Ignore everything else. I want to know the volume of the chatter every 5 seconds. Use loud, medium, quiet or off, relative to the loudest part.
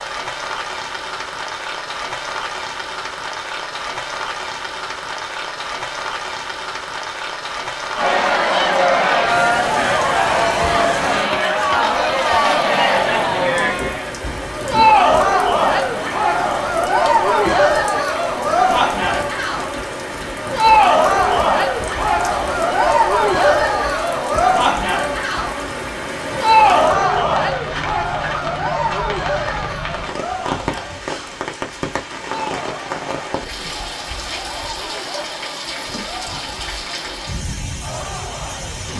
off, loud, loud, loud, loud, loud, quiet, quiet.